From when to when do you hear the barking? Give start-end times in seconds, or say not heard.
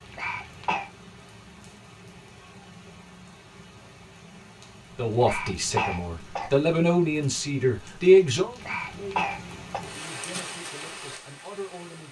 not heard.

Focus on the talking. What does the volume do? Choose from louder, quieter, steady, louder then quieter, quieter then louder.
louder then quieter.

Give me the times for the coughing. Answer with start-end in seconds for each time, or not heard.
0.1-0.9, 5.1-6.5, 8.5-9.8.